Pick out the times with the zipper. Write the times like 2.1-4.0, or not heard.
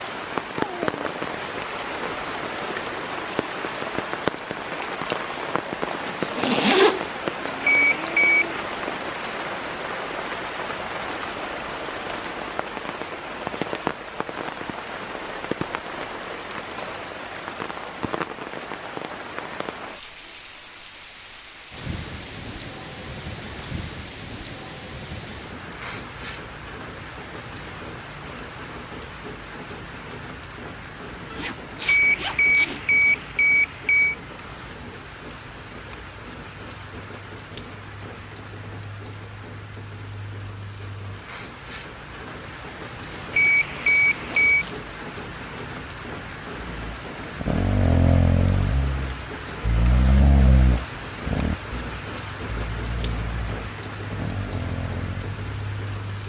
5.7-7.1, 31.3-33.0, 43.2-44.9.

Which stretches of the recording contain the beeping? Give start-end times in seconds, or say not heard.
7.6-8.3, 31.9-34.1, 43.3-44.6.